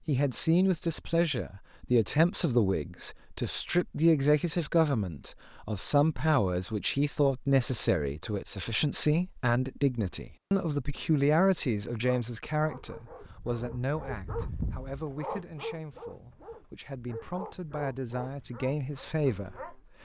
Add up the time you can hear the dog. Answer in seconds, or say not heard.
8 s.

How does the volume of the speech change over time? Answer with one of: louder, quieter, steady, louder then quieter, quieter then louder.
quieter.